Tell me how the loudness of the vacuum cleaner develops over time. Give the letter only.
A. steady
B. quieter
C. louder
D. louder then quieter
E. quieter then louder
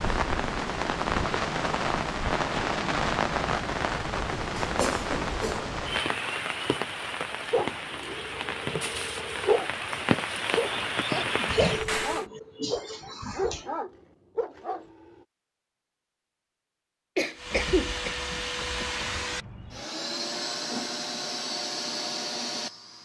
A.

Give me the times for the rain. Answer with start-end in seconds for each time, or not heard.
0.0-12.2.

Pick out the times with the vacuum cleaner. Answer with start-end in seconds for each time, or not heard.
17.4-23.0.